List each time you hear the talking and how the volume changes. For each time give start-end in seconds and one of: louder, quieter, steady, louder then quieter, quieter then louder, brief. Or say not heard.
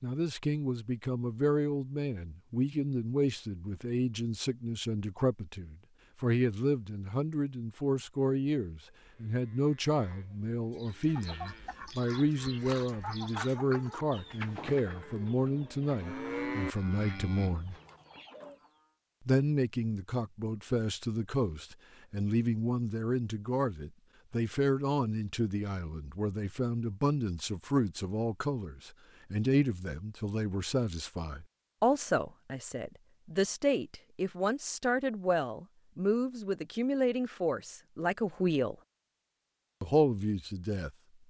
0.0-17.8 steady
19.2-38.8 steady
39.8-41.2 brief.